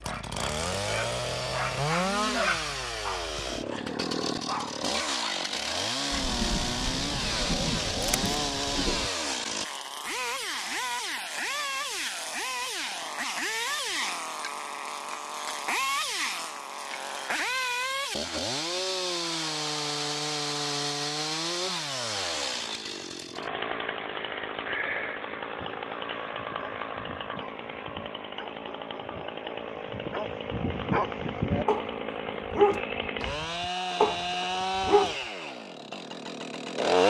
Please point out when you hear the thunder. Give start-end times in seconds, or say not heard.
6.1-9.1.